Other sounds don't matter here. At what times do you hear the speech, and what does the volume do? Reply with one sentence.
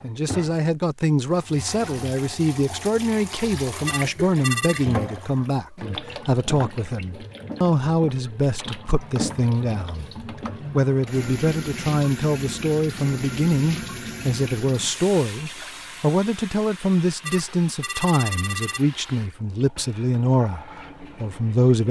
The speech can be heard from 0.0 to 21.8 s, at a steady volume.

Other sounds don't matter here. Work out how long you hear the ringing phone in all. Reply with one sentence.
You can hear the ringing phone for 3 seconds altogether.